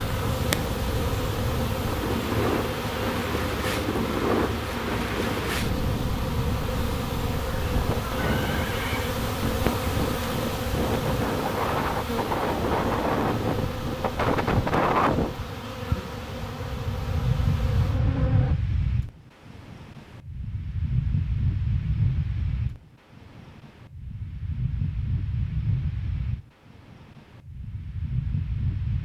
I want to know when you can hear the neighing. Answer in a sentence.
You can hear the neighing from 8.2 to 9.2 s.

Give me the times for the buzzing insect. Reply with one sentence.
The buzzing insect can be heard from 0.0 to 18.6 s.